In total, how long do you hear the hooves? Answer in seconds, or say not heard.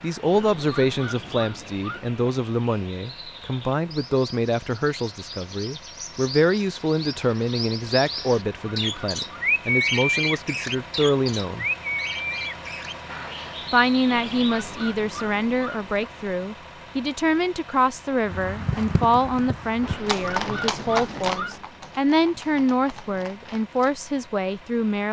6 s.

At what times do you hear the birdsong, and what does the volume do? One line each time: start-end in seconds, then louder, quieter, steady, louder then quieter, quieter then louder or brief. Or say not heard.
0.0-14.7 louder then quieter.